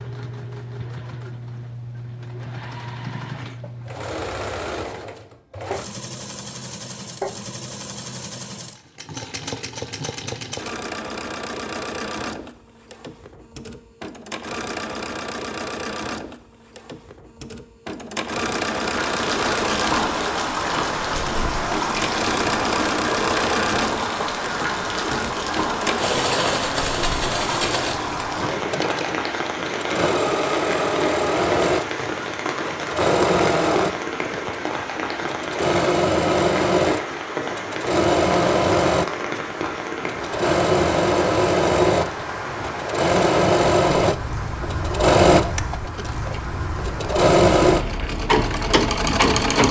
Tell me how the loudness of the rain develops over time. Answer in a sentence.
The loudness of the rain goes down.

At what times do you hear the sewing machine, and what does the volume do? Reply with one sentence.
You can hear the sewing machine from 0.0 to 49.6 s, getting louder.